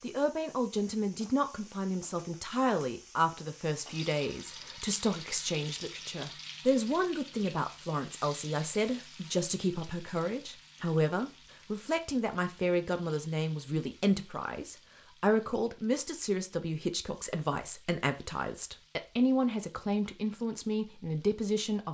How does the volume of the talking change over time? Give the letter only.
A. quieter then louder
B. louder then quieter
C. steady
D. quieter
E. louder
C.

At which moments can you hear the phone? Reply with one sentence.
You can't hear the phone here.